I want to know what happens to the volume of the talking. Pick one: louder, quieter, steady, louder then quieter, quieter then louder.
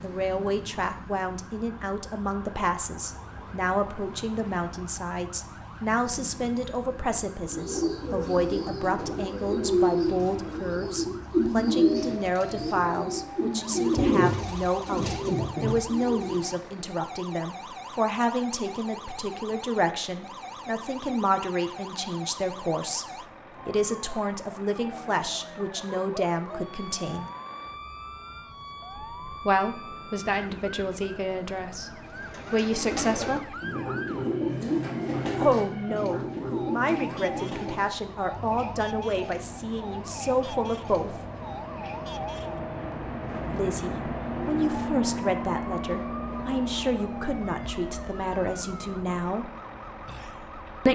steady.